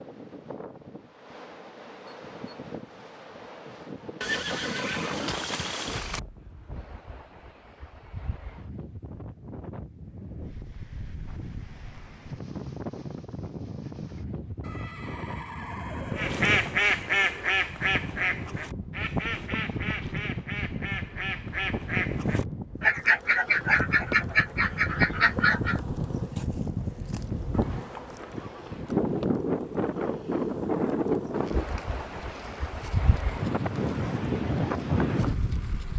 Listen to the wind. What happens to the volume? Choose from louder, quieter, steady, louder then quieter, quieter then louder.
louder.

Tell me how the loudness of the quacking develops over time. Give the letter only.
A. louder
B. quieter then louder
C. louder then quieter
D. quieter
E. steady
B.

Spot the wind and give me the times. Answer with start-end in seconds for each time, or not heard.
0.0-35.9.